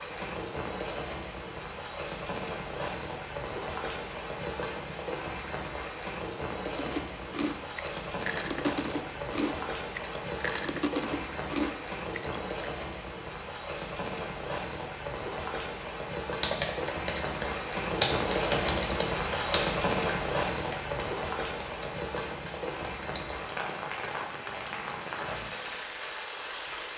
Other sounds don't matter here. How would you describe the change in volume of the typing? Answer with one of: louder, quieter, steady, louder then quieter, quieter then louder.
quieter.